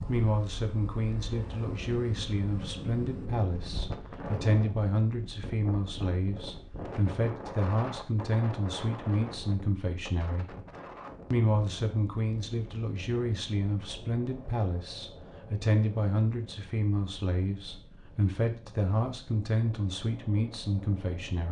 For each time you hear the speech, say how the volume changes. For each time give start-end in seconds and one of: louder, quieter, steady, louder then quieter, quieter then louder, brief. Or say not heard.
0.1-10.4 steady
11.3-21.4 steady.